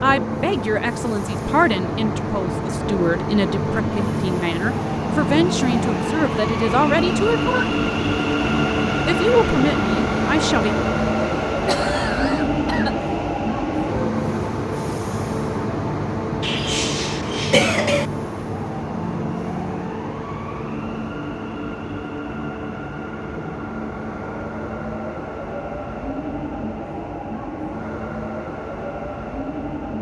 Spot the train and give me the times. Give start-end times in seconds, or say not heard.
0.0-29.9.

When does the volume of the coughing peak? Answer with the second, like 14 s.
18 s.